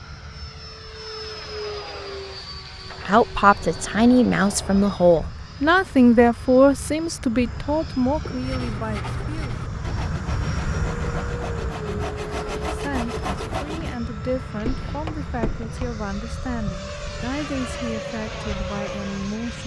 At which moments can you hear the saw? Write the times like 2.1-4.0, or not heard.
8.3-13.9.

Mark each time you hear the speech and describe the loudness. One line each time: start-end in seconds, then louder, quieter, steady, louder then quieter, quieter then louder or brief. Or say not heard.
3.0-9.6 quieter
12.7-19.6 steady.